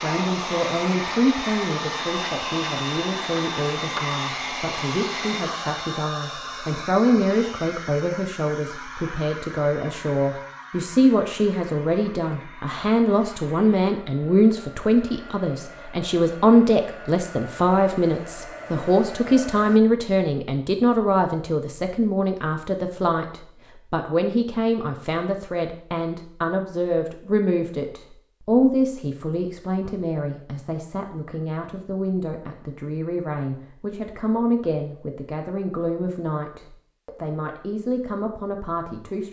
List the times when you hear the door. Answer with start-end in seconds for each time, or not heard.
not heard.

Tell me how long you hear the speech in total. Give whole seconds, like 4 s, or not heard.
39 s.